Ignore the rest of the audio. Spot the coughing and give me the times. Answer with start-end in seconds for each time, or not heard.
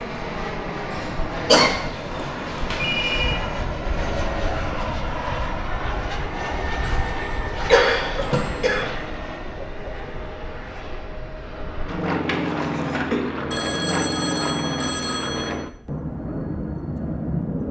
0.9-1.7, 7.7-8.9, 11.9-13.2.